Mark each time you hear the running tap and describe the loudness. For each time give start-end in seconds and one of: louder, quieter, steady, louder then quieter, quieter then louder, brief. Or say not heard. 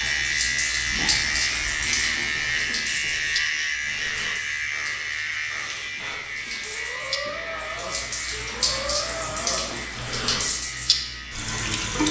0.0-12.0 quieter then louder.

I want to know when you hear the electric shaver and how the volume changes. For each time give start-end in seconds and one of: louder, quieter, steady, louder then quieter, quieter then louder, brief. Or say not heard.
0.0-12.0 quieter.